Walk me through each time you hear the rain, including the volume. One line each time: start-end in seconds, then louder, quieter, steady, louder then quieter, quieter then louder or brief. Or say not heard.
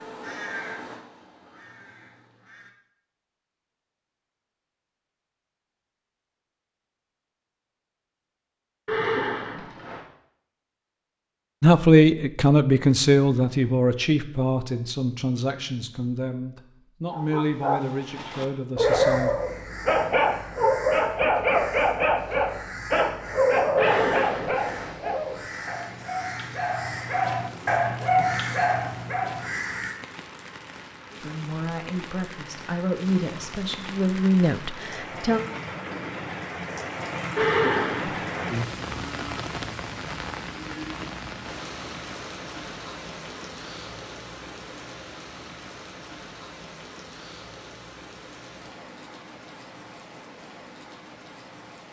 24.2-51.8 louder then quieter.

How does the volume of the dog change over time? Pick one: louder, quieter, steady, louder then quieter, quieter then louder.
quieter then louder.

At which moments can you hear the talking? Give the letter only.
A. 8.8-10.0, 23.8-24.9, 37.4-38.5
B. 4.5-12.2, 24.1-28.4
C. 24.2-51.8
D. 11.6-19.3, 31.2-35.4
D.